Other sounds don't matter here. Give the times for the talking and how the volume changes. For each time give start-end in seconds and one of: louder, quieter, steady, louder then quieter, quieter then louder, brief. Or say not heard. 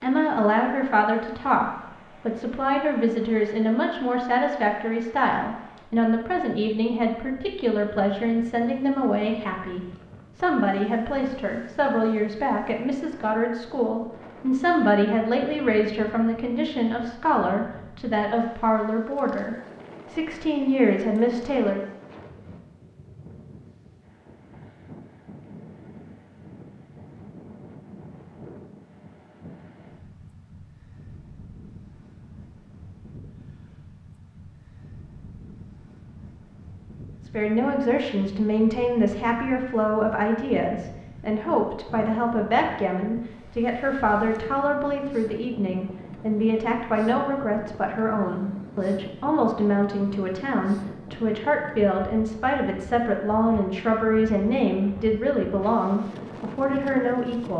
0.0-21.8 steady
37.2-57.5 steady.